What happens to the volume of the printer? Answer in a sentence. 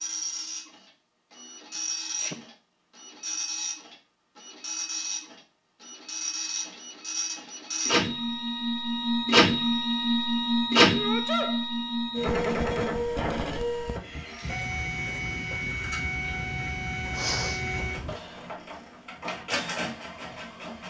The volume of the printer goes up, then down.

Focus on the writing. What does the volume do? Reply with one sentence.
The volume of the writing goes up.